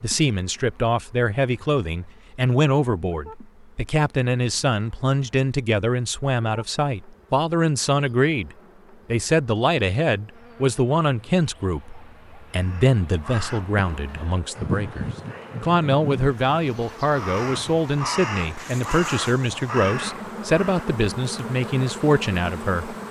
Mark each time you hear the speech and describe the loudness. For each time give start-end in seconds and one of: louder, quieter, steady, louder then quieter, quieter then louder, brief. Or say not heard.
0.0-23.0 steady.